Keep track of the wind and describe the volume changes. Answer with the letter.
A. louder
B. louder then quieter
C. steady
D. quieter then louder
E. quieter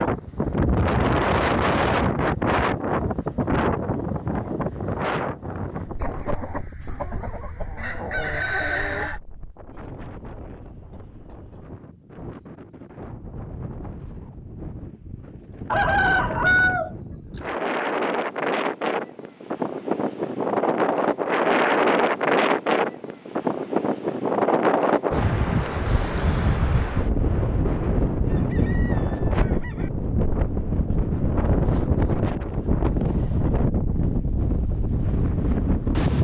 D.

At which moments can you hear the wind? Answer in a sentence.
You can hear the wind from 0.0 to 36.1 s.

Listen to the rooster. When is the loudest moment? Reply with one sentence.
The volume of the rooster peaks at 17 seconds.